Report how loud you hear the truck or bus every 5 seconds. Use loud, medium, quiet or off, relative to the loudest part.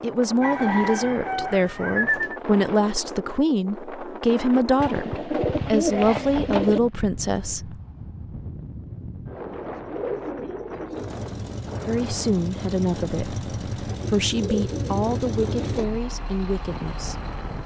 off, off, loud, loud.